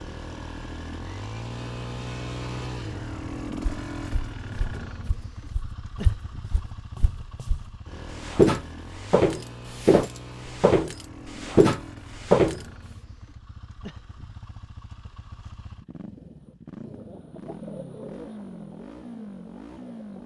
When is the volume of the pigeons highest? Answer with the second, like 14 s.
18 s.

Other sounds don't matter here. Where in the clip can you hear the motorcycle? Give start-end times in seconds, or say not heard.
0.0-20.2.